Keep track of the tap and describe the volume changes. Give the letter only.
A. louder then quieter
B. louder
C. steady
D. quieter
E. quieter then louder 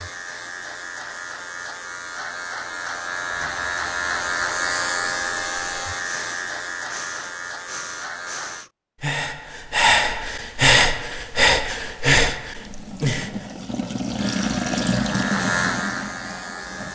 A.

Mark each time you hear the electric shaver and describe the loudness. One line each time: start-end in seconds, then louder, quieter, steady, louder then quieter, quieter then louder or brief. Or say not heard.
0.0-8.7 louder then quieter
14.2-16.9 brief.